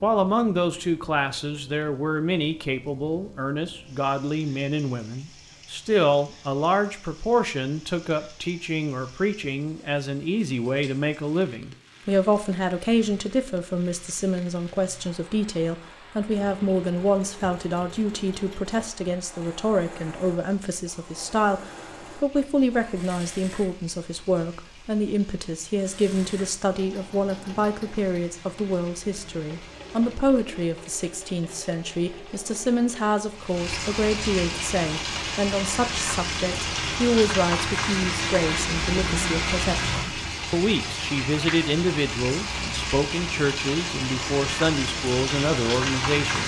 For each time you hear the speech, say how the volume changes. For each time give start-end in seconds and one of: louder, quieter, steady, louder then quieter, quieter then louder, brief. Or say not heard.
0.0-46.4 steady.